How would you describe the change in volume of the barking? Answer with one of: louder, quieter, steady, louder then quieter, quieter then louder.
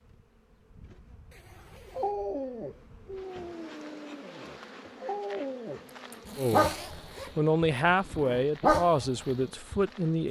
quieter then louder.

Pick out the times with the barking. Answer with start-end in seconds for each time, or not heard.
1.9-5.8, 6.5-9.8.